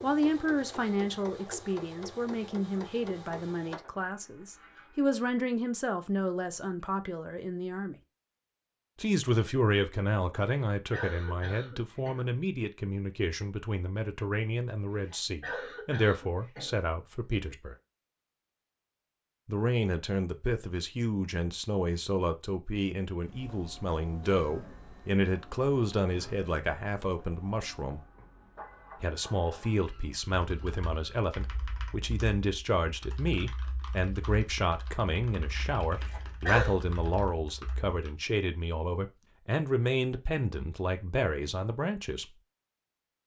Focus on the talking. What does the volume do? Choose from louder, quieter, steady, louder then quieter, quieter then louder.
steady.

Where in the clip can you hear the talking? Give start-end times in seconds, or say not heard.
0.0-8.0, 8.9-17.8, 19.4-28.0, 29.0-42.2.